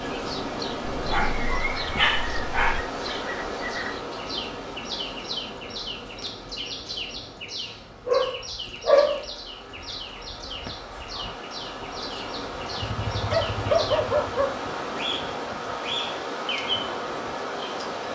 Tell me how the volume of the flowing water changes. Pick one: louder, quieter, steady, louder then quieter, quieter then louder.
quieter then louder.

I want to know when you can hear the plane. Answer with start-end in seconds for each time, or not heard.
not heard.